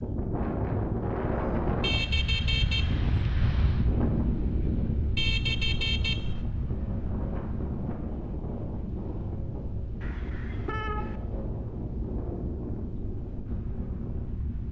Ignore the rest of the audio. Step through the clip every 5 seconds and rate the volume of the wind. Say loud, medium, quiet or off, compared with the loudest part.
loud, medium, medium.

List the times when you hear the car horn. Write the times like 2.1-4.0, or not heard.
1.8-3.1, 5.2-6.5, 10.0-11.2.